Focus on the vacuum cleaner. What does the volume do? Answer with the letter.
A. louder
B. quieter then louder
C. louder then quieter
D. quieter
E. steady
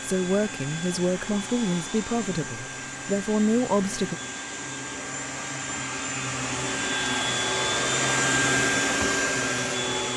A.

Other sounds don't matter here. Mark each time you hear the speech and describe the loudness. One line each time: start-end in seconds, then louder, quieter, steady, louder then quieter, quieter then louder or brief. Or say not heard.
0.0-4.2 quieter then louder.